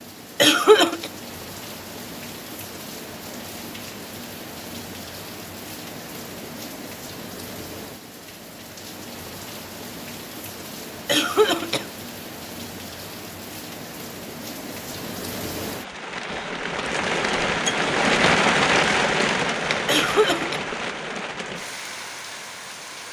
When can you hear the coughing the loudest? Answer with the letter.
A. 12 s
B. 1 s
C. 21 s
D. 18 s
B.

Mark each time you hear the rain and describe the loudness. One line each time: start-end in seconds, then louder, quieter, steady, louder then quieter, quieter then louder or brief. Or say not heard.
0.0-23.0 louder.